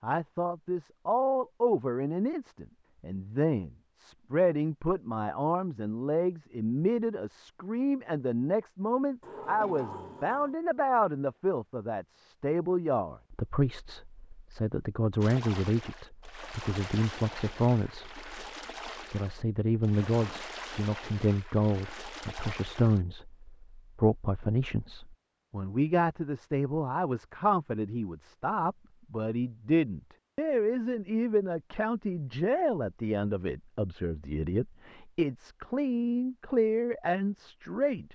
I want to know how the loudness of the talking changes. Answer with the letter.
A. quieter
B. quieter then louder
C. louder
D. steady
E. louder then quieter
D.